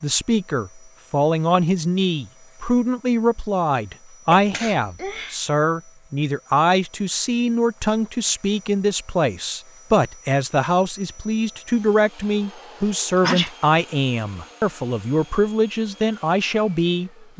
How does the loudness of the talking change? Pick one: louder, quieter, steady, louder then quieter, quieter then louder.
steady.